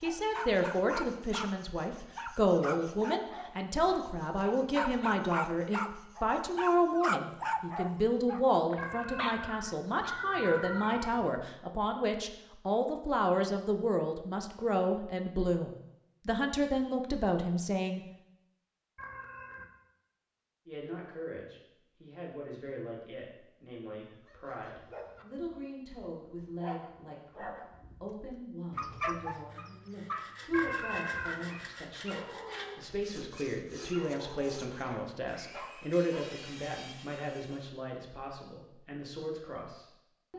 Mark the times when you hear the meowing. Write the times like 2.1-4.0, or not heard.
8.8-11.2, 18.9-19.7, 30.5-31.8.